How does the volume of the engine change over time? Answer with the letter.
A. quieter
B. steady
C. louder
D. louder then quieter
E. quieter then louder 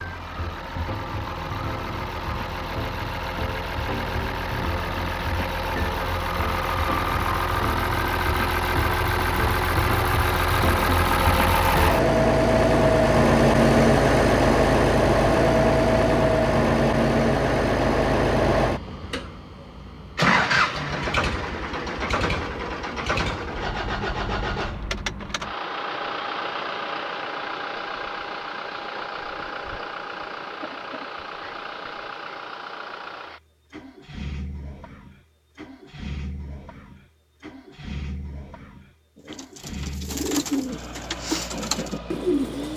D.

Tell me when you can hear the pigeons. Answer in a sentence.
The pigeons can be heard from 39.1 to 42.7 s.